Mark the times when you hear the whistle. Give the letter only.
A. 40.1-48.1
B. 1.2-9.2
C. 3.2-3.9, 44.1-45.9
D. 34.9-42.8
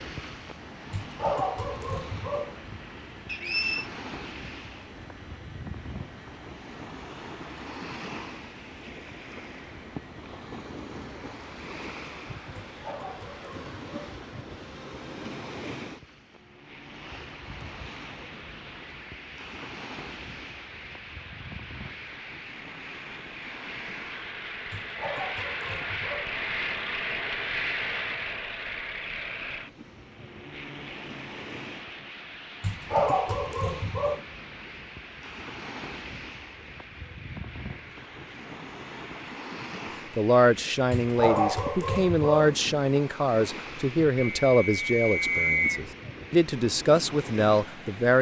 C.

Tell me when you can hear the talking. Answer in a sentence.
You can hear the talking from 40.1 to 48.1 s.